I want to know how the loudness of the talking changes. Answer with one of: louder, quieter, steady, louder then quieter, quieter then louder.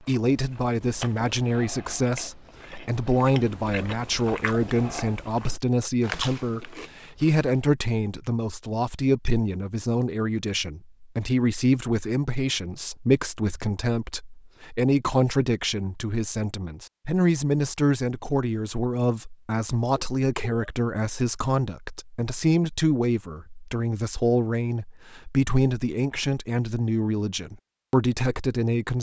steady.